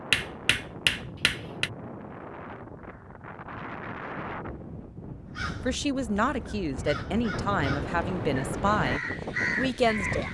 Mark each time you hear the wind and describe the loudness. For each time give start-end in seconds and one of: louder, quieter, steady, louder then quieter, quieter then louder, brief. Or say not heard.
0.0-10.2 louder.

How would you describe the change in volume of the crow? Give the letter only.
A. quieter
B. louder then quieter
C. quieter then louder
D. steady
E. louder
E.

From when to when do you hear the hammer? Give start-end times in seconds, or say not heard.
0.1-1.7.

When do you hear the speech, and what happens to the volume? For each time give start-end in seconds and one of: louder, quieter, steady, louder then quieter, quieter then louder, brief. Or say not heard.
5.7-10.2 steady.